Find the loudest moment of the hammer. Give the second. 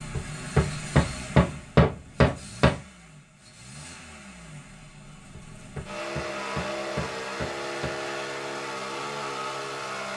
2 s.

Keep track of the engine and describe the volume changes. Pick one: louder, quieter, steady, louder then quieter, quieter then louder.
quieter then louder.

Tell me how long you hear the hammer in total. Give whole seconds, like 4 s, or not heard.
5 s.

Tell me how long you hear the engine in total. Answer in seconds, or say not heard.
10 s.